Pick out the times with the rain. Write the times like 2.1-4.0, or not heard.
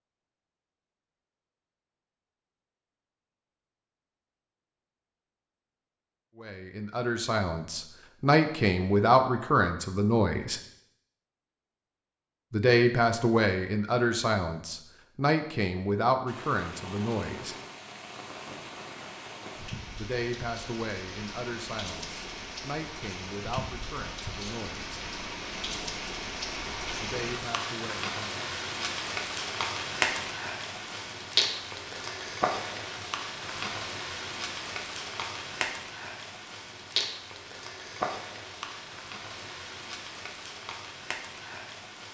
16.2-42.0.